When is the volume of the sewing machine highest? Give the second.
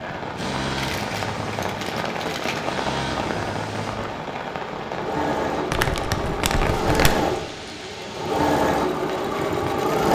9 s.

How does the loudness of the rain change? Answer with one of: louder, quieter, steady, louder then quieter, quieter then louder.
quieter.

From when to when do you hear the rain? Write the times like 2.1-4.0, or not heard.
0.0-9.9.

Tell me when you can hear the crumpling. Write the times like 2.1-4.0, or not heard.
0.8-2.8, 5.7-7.2.